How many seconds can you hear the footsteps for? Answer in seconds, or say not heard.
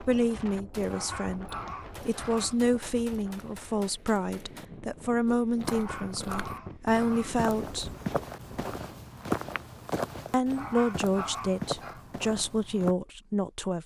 8 s.